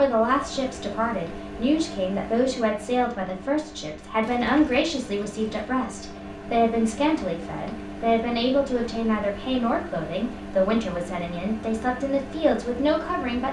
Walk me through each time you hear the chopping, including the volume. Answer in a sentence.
You can't hear the chopping here.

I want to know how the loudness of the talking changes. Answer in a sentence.
The volume of the talking stays about the same.